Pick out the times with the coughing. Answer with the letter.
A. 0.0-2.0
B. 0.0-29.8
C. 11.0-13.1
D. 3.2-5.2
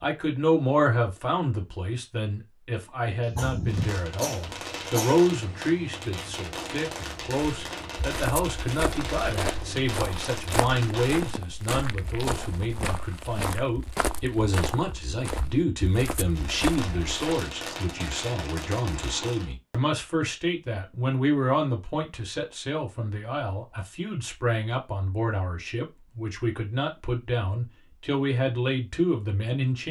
D.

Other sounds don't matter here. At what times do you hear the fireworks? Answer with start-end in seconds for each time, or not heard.
3.6-11.3, 16.2-19.6.